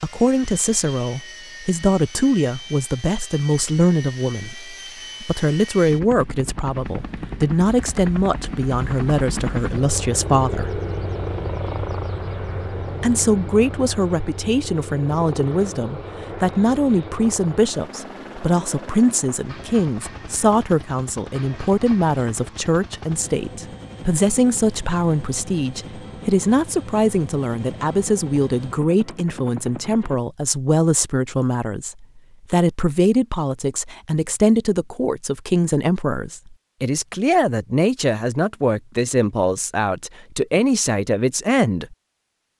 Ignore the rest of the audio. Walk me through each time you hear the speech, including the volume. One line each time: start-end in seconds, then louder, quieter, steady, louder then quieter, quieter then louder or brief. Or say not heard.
0.0-10.8 steady
13.0-42.0 steady.